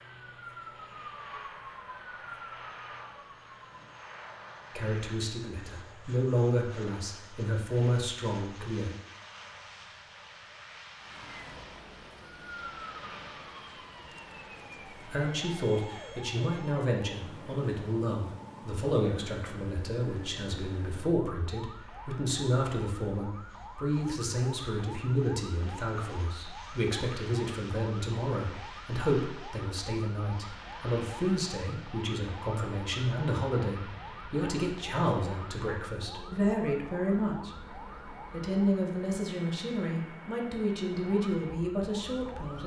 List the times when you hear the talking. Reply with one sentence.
You can hear the talking from 4.8 to 8.9 s and from 14.9 to 42.6 s.